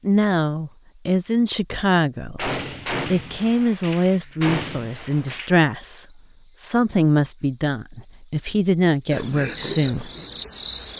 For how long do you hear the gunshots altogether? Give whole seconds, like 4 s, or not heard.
3 s.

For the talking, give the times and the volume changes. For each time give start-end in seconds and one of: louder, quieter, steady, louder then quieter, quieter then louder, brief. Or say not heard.
0.0-10.1 steady.